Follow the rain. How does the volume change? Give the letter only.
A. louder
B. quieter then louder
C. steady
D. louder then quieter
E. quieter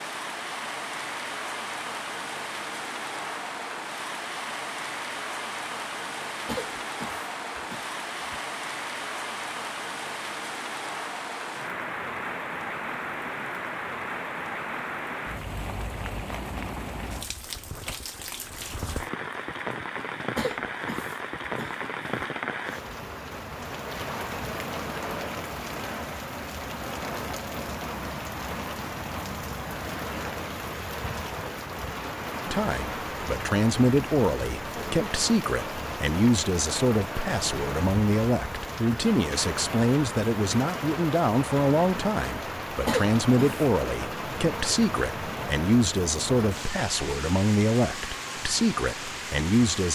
C.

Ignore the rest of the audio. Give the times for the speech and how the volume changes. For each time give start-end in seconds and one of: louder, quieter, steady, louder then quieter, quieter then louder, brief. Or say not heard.
32.5-49.9 steady.